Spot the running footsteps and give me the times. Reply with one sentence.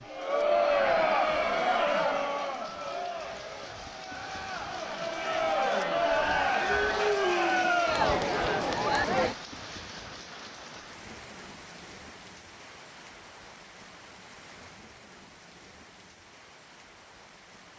The running footsteps can't be heard in this clip.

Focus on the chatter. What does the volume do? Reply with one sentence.
The loudness of the chatter goes down, then up.